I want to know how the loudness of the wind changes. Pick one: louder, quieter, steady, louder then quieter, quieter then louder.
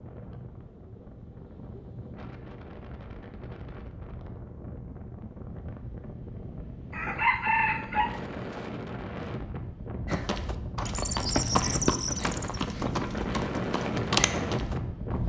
louder.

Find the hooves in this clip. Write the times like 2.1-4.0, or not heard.
10.1-15.2.